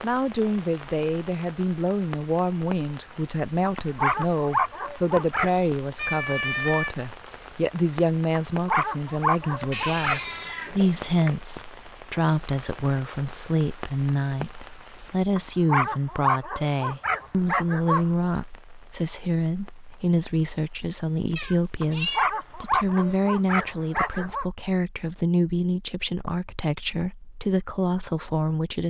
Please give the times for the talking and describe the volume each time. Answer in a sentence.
The talking can be heard from 0.0 to 28.8 s, at a steady volume.